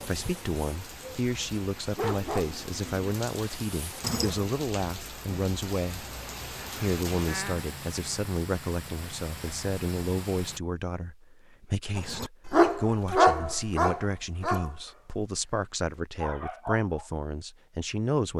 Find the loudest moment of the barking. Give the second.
13 s.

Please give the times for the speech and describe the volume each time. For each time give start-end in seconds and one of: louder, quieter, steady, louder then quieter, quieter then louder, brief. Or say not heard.
0.1-6.2 steady
6.8-18.3 steady.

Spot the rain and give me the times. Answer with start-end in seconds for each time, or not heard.
0.0-10.6.